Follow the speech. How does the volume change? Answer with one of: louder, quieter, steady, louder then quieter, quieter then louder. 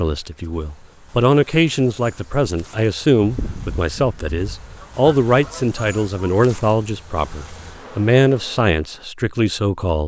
steady.